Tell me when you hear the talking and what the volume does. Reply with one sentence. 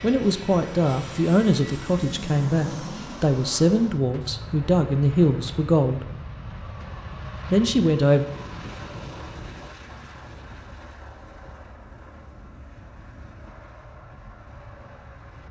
The talking can be heard from 0.0 to 6.0 s, at a steady volume; and briefly from 7.5 to 8.2 s.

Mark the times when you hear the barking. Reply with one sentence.
The barking can't be heard in this clip.